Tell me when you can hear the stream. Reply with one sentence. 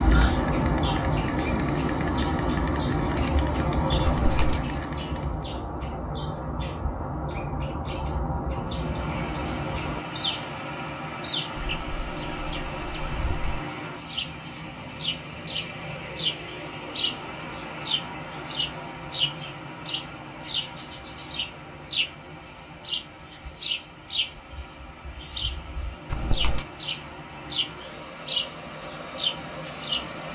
You can hear the stream from 8.6 to 30.3 s.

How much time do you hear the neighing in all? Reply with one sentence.
You can hear the neighing for 2 seconds altogether.